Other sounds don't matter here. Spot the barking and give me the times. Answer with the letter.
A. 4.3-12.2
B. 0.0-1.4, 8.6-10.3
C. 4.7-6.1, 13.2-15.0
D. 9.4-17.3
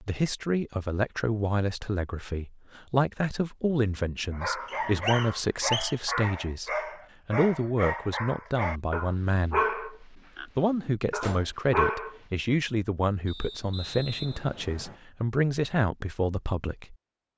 A.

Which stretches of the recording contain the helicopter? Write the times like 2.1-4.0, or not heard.
not heard.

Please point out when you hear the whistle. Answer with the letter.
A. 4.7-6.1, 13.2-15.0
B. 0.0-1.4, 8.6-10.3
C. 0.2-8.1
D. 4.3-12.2
A.